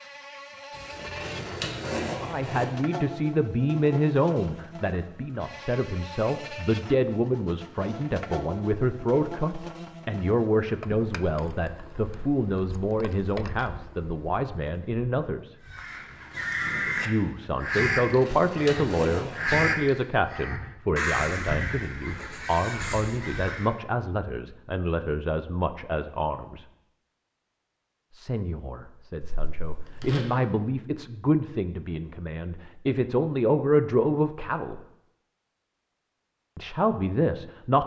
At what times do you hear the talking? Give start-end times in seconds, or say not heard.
2.2-15.6, 17.1-26.6, 28.1-34.8, 36.5-37.8.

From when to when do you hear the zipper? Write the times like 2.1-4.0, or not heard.
0.8-2.6, 18.1-19.6, 29.2-30.2.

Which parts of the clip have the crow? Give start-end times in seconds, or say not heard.
15.6-23.8.